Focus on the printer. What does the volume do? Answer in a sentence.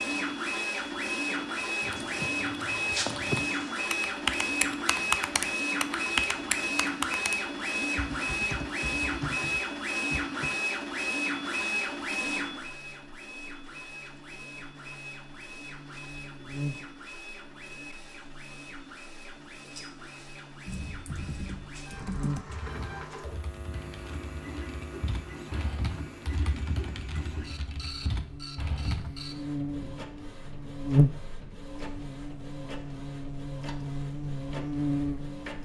The volume of the printer goes down.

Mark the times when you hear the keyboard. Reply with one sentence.
The keyboard can be heard from 1.8 to 10.5 s and from 20.6 to 29.2 s.